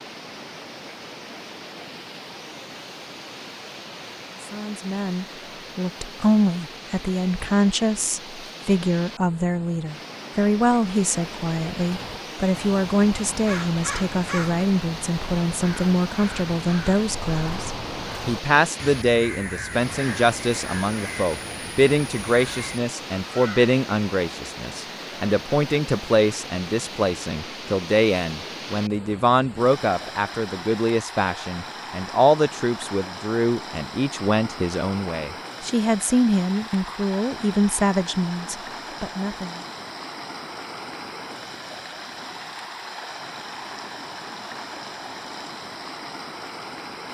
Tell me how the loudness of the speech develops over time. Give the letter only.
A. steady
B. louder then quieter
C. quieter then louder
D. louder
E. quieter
A.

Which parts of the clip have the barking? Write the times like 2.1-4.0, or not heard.
not heard.